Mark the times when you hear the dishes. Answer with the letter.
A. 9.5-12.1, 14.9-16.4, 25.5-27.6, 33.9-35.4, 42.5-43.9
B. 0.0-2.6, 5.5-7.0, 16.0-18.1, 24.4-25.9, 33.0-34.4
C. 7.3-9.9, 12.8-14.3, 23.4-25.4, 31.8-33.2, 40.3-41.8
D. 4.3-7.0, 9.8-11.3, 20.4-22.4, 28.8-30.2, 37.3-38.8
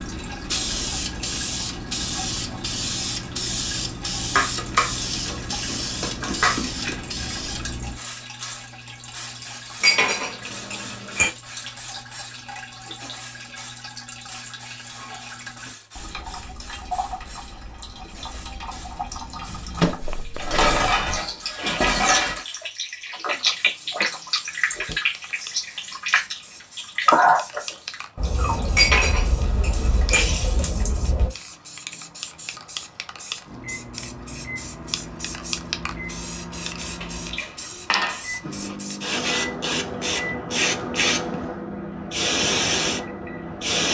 D.